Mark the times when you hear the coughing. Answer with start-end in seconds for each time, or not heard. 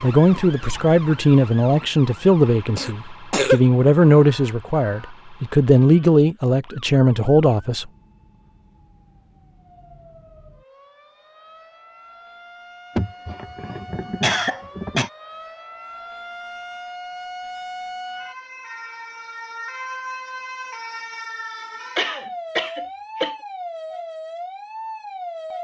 2.8-3.6, 12.9-15.1, 21.9-23.4.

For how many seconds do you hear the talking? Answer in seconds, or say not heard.
8 s.